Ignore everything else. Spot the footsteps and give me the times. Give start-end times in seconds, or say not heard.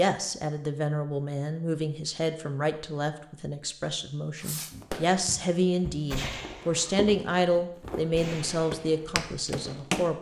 4.7-10.1.